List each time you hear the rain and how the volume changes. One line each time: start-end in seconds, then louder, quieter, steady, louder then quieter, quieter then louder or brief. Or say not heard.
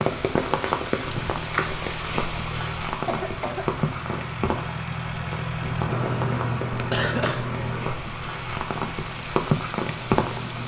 0.0-10.6 quieter then louder.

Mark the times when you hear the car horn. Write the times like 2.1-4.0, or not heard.
not heard.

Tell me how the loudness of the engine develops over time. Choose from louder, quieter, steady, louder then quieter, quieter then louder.
louder then quieter.